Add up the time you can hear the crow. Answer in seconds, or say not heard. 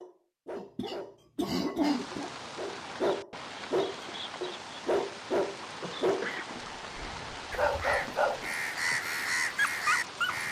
3 s.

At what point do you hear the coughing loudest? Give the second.
2 s.